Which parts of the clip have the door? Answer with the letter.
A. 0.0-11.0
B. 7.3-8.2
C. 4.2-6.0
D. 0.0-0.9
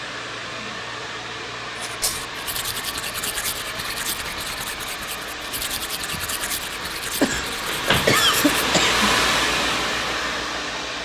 B.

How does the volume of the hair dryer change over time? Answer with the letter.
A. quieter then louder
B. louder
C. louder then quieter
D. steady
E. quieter
B.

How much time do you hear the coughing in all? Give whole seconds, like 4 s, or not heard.
2 s.